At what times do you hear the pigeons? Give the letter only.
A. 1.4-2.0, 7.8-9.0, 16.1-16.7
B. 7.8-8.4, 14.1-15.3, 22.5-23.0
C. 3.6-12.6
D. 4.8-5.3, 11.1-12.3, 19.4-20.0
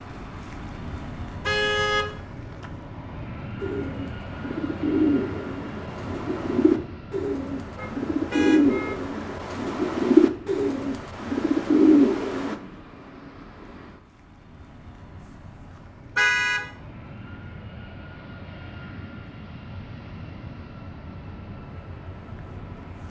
C.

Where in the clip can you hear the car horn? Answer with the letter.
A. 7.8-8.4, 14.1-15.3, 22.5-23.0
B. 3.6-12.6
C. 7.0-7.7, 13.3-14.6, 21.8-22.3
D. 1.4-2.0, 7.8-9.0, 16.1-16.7
D.